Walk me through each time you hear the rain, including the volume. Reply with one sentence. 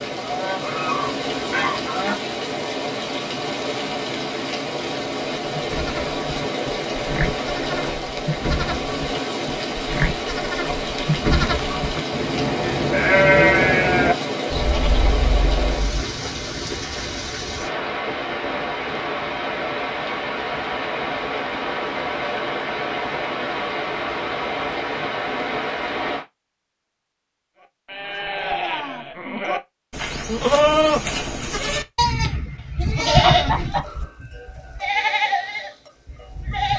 The rain can be heard from 0.0 to 26.2 s, at a steady volume.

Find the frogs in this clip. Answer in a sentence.
You can't hear the frogs here.